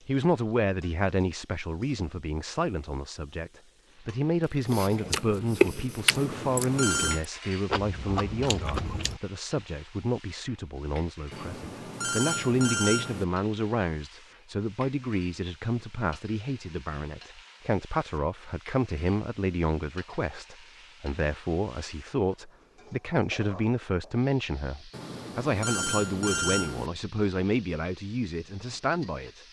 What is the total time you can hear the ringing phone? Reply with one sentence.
You can hear the ringing phone for 5 seconds altogether.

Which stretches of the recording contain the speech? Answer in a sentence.
You can hear the speech from 0.1 to 29.4 s.